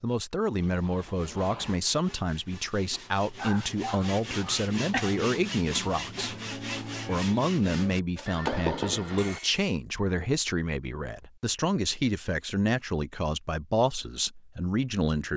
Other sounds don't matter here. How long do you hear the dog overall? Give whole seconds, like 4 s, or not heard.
2 s.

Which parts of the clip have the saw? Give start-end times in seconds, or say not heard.
0.9-9.7.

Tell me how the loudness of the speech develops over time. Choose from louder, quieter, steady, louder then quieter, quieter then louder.
steady.